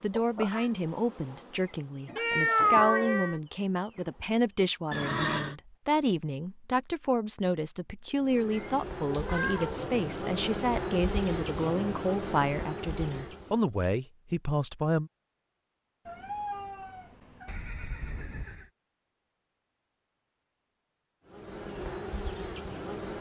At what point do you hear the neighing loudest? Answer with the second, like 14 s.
5 s.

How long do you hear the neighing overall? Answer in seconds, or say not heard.
2 s.